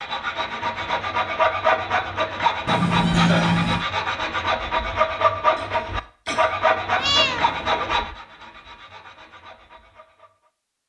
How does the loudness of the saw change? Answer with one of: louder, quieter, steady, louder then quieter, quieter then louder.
quieter.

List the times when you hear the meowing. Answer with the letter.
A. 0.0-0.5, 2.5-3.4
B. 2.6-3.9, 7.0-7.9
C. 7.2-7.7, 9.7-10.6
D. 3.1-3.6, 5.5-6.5
B.